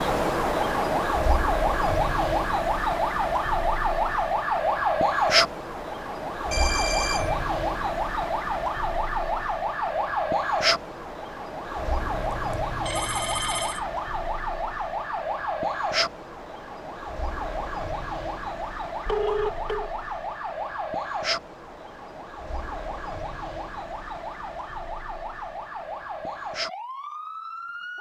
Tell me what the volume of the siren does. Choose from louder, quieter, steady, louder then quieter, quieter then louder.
quieter.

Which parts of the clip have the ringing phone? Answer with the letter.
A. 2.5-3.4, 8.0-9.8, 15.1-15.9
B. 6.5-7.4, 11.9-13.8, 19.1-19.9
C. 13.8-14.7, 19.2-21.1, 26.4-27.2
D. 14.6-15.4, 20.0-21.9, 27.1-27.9
B.